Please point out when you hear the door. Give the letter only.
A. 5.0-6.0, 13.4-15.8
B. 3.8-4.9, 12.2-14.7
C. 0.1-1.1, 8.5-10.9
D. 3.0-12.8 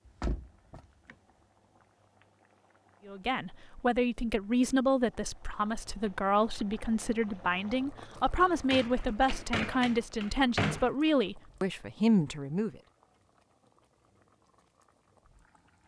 C.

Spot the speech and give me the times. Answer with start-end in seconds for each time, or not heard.
3.0-12.8.